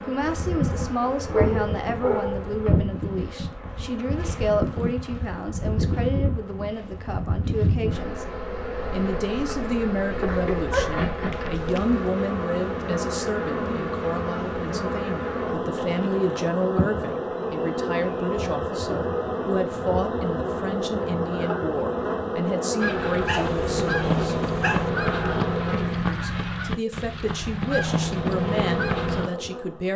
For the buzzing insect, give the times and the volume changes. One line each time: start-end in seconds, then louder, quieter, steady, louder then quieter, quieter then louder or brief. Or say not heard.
0.0-26.1 steady
27.9-29.9 brief.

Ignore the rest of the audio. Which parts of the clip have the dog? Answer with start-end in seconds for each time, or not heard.
1.1-2.6, 10.2-12.1, 23.2-24.9.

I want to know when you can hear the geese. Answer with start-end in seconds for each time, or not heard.
22.8-29.3.